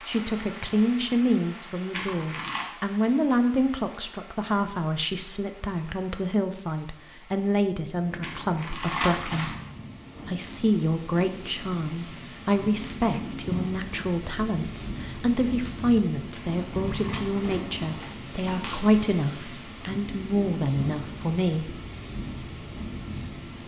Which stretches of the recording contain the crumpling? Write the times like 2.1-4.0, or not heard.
1.9-2.6, 8.2-9.8, 16.4-18.8.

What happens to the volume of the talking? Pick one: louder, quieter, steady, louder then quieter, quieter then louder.
steady.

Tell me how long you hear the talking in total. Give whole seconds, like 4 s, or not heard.
21 s.